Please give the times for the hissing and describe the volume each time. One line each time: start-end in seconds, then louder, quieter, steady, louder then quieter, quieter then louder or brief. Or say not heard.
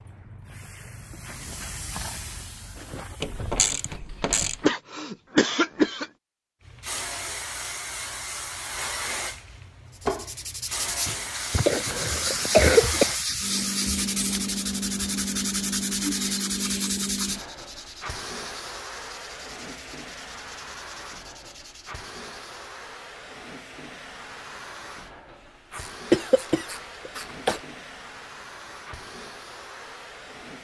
0.0-4.8 louder then quieter
6.7-30.5 quieter.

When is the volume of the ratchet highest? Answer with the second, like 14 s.
4 s.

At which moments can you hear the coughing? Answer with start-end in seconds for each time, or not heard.
4.6-6.0, 11.1-13.1, 26.1-27.6.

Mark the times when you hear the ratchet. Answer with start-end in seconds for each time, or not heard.
3.2-4.7, 25.7-27.6.